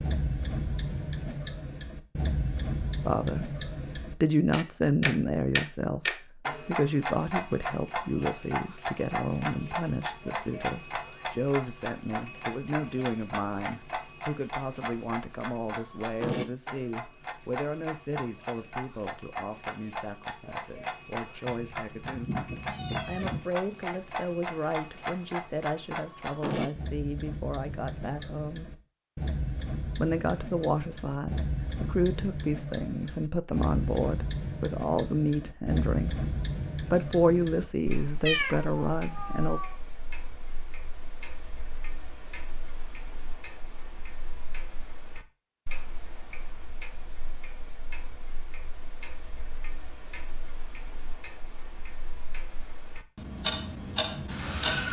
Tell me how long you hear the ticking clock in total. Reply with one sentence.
The ticking clock can be heard for 55 seconds in total.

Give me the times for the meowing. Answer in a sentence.
You can hear the meowing from 21.4 to 23.4 s and from 38.2 to 39.8 s.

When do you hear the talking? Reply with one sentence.
You can hear the talking from 3.0 to 28.7 s, from 29.9 to 36.2 s and from 36.8 to 39.6 s.